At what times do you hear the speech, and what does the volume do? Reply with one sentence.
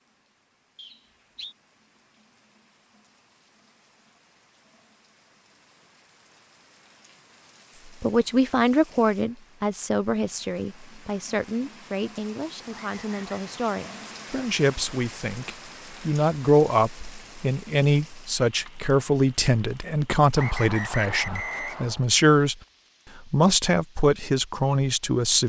You can hear the speech from 7.8 to 22.6 s, getting quieter then louder; and briefly from 23.1 to 25.4 s.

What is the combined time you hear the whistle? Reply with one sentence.
The whistle can be heard for 3 seconds in total.